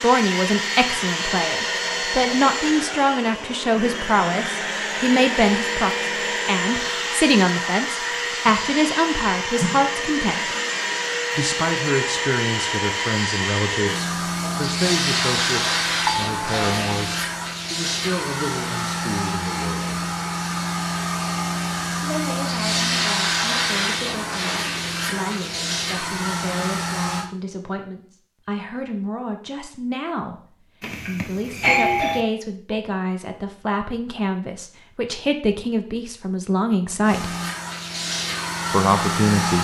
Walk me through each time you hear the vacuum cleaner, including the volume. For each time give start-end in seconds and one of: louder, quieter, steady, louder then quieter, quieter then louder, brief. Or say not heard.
0.0-27.3 steady
37.0-39.5 brief.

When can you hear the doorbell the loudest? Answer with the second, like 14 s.
32 s.